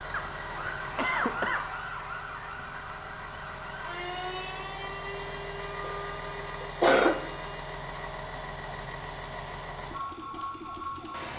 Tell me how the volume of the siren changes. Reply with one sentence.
The loudness of the siren goes down.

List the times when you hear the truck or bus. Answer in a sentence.
You can hear the truck or bus from 0.0 to 11.3 s.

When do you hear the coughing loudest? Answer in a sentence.
The loudest moment of the coughing is at 7 seconds.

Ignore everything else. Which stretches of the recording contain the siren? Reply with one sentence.
You can hear the siren from 0.0 to 11.3 s.